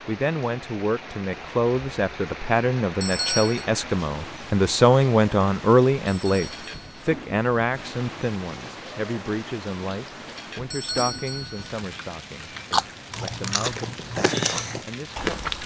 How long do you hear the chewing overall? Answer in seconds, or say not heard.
3 s.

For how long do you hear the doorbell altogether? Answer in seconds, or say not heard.
3 s.